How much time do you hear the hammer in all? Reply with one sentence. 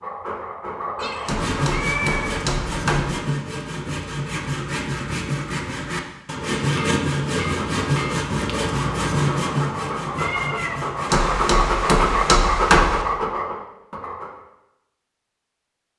The hammer can be heard for 6 seconds in total.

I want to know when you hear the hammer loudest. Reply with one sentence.
The volume of the hammer peaks at 13 seconds.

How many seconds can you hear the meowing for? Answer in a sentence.
The meowing can be heard for 2 seconds in total.